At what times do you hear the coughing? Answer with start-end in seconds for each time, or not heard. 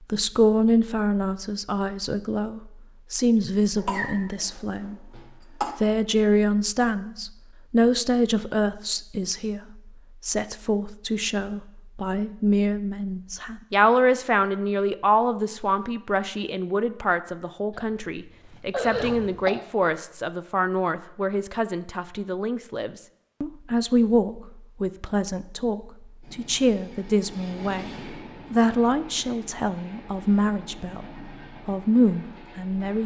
3.8-5.8, 17.7-19.6.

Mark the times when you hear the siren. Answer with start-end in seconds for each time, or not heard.
not heard.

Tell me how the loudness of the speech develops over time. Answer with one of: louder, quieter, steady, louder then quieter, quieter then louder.
steady.